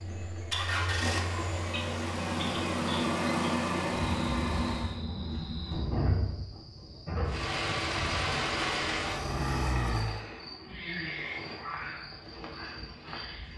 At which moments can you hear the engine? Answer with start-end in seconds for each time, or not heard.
0.0-5.0, 7.2-10.2.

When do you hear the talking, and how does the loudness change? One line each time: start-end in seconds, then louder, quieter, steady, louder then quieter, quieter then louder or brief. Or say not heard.
not heard.